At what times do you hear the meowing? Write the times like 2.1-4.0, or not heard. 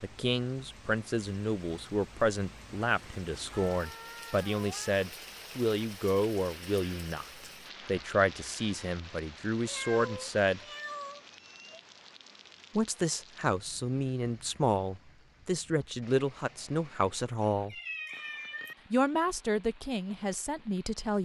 3.5-5.0, 9.7-11.8, 17.7-18.8.